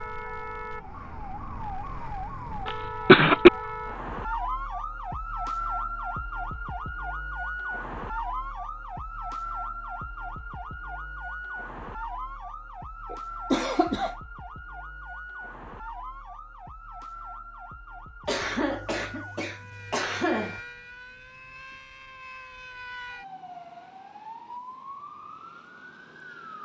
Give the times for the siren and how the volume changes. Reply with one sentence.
The siren can be heard from 0.0 to 26.6 s, getting quieter.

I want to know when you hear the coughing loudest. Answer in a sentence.
The loudest moment of the coughing is at 3 seconds.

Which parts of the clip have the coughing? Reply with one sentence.
You can hear the coughing from 2.6 to 3.5 s, from 13.1 to 14.2 s and from 18.2 to 20.6 s.